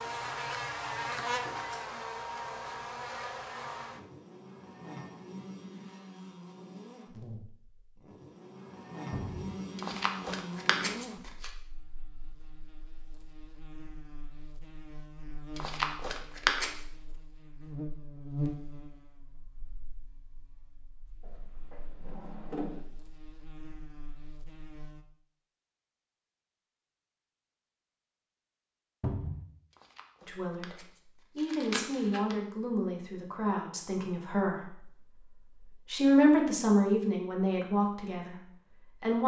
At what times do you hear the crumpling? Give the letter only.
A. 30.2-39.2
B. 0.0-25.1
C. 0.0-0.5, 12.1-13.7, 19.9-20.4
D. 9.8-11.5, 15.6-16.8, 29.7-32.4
D.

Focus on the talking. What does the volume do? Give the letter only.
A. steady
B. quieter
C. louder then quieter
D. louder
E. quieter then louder
C.